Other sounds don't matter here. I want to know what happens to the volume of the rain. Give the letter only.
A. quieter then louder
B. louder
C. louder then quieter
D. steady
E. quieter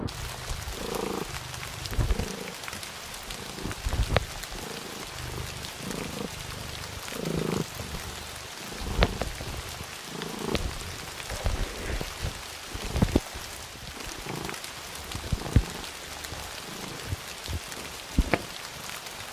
D.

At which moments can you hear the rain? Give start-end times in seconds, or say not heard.
0.0-19.2.